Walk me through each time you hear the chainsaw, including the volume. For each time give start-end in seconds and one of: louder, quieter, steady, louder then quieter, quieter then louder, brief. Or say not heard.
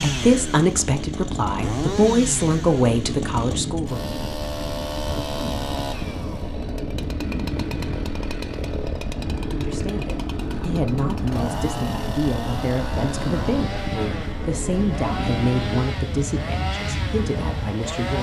0.0-18.1 steady.